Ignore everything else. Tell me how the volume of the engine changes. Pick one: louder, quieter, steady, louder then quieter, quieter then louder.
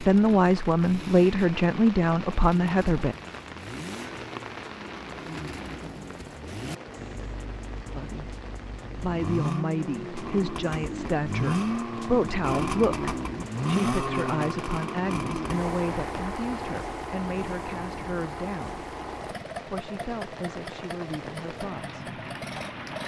louder then quieter.